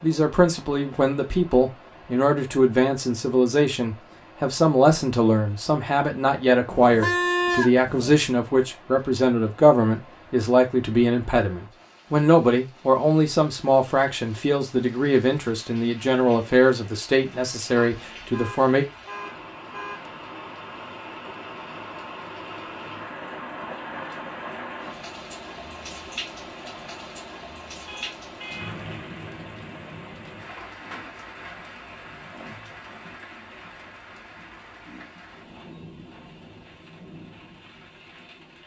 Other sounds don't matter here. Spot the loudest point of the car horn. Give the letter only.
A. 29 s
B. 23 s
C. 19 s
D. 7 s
D.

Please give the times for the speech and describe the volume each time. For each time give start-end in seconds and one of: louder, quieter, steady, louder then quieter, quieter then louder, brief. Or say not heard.
0.0-18.9 steady.